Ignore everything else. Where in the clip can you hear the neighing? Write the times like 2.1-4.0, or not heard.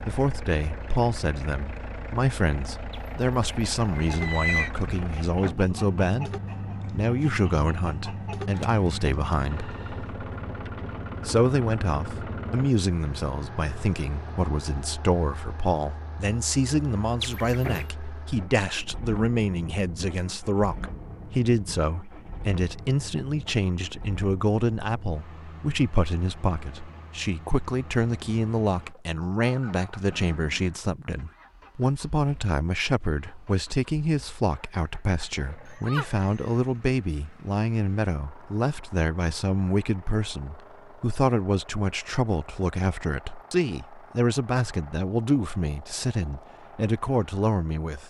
2.9-4.7, 17.2-17.9, 35.7-36.5.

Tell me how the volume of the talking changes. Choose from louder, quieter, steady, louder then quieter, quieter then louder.
steady.